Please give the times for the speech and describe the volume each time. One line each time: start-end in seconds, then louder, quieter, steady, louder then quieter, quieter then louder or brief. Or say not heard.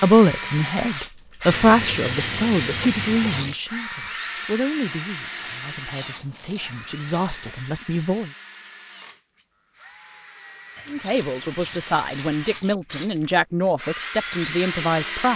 0.0-8.3 quieter then louder
10.8-15.3 steady.